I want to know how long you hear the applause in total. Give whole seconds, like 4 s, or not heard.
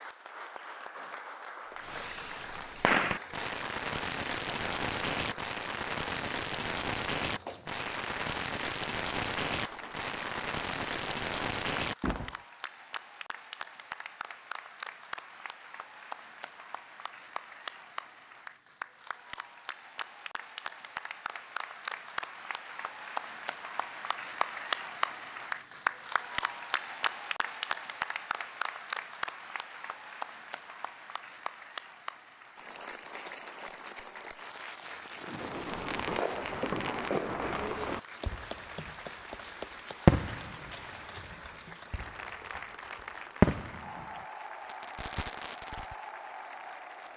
47 s.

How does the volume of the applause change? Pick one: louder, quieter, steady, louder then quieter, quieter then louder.
louder then quieter.